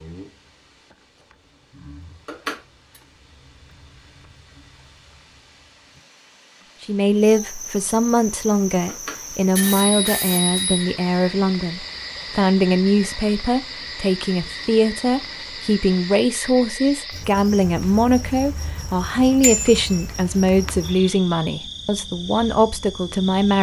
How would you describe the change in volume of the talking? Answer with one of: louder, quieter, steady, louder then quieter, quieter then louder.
steady.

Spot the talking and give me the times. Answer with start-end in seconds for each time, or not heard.
6.8-23.5.